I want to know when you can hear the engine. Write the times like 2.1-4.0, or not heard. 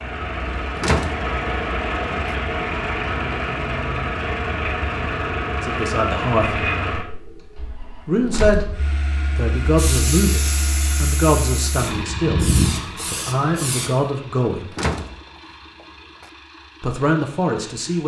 0.0-18.0.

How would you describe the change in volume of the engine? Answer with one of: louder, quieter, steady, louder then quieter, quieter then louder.
quieter.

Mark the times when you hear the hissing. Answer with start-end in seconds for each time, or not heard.
9.6-13.9.